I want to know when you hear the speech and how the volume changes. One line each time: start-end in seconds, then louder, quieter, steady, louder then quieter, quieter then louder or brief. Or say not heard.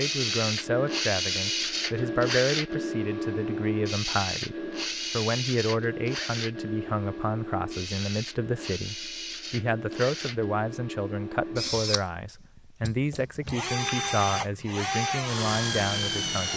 0.0-16.5 steady.